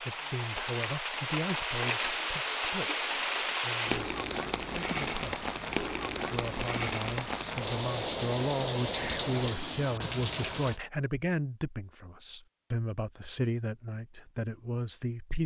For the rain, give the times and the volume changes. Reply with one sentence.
You can hear the rain from 0.0 to 10.8 s, at a steady volume.